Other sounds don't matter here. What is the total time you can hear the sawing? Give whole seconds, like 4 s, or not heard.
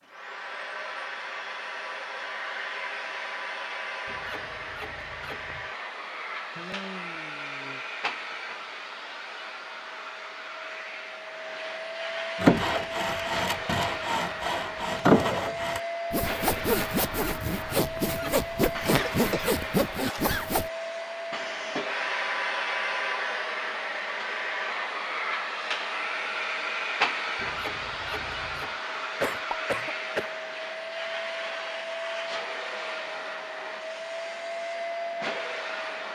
8 s.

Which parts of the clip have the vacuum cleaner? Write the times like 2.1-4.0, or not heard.
0.0-36.1.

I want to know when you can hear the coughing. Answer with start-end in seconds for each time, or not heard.
6.0-7.8, 18.6-20.4, 28.9-30.4.